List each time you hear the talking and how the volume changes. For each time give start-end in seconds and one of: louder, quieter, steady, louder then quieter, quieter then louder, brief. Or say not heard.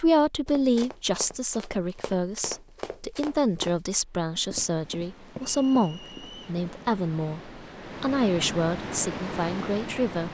0.0-10.2 steady.